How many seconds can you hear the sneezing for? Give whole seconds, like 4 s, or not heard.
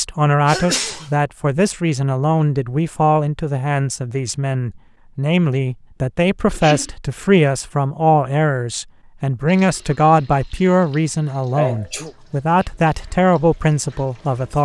2 s.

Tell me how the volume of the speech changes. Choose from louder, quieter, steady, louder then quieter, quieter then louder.
steady.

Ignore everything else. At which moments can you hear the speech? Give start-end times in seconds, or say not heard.
0.0-14.5.